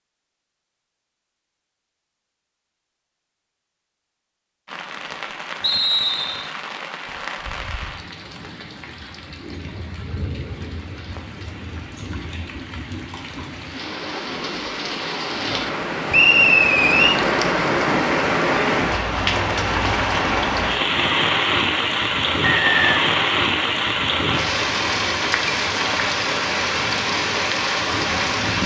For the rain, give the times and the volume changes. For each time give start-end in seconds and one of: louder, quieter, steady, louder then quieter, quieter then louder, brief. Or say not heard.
4.7-28.6 louder.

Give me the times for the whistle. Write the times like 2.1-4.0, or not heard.
5.6-6.5, 16.1-17.2, 22.4-23.1.